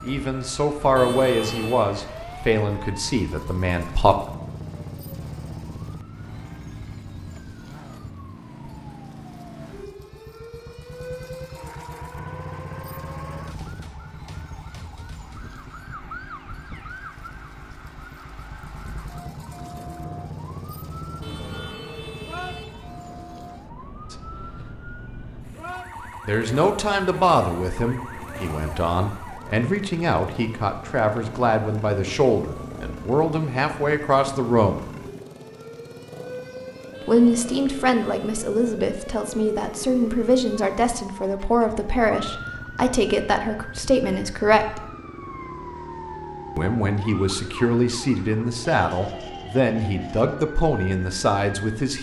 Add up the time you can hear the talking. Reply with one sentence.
The talking can be heard for 26 seconds in total.